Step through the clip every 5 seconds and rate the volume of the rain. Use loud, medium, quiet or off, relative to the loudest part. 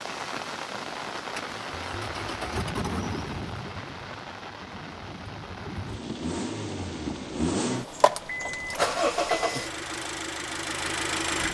loud, medium, off.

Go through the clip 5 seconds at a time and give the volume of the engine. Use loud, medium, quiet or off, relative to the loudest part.
medium, loud, loud.